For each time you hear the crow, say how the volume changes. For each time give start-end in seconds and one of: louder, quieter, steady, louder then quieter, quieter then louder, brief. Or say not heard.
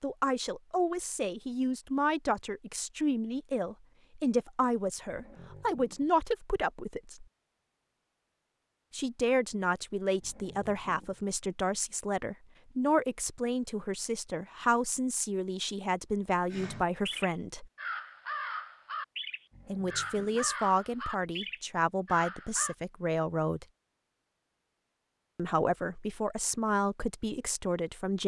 16.5-22.8 steady.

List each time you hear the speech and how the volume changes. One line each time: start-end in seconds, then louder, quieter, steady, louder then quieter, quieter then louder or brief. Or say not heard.
0.0-7.2 steady
8.9-17.6 steady
19.6-23.6 steady
25.4-28.2 brief.